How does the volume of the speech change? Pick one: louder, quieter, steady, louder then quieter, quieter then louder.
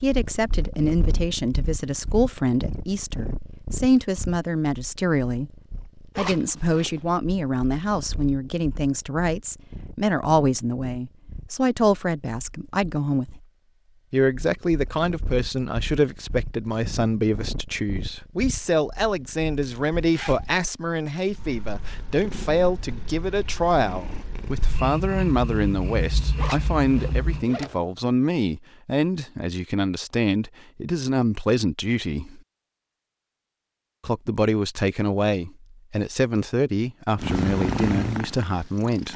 steady.